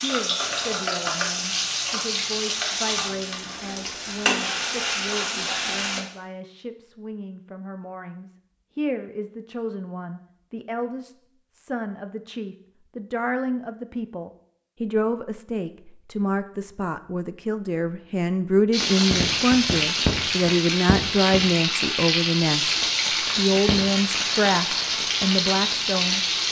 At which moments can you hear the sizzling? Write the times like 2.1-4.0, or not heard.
0.0-6.0, 18.7-26.4.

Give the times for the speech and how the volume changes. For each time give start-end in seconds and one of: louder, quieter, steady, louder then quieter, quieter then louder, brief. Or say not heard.
0.0-22.8 louder
23.4-26.2 brief.